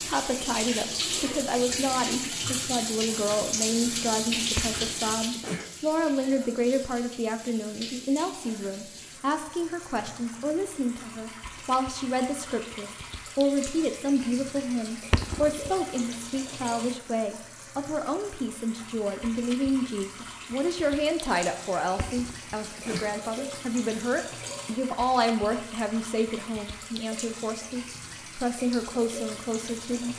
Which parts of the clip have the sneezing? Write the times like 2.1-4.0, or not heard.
4.5-5.7, 15.1-15.7, 21.9-23.6.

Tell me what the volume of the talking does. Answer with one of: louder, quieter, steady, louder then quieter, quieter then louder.
steady.